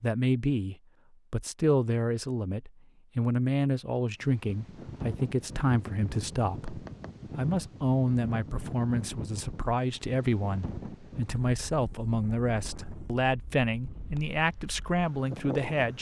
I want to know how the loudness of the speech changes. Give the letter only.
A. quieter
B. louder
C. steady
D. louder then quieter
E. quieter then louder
C.